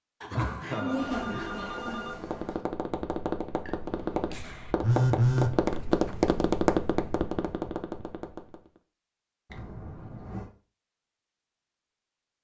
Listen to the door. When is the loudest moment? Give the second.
1 s.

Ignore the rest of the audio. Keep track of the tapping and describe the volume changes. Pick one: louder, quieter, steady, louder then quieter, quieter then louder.
louder then quieter.